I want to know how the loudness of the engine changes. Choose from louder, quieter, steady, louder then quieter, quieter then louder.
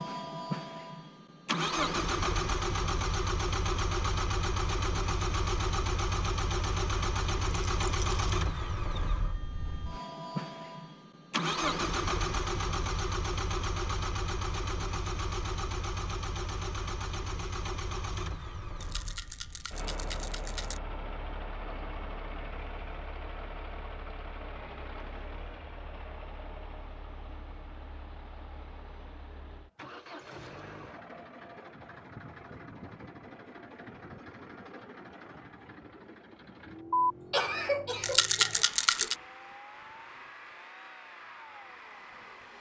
quieter.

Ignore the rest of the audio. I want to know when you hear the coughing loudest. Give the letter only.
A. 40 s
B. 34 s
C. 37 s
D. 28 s
C.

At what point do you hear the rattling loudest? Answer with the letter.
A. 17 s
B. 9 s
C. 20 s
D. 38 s
D.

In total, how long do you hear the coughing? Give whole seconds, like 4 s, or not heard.
2 s.